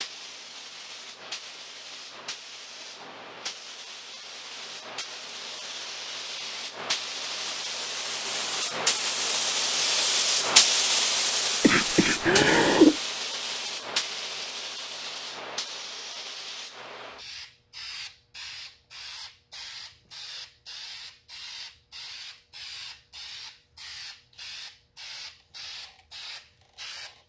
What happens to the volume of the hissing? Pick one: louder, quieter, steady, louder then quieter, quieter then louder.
louder then quieter.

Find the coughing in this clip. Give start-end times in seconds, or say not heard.
11.6-12.9.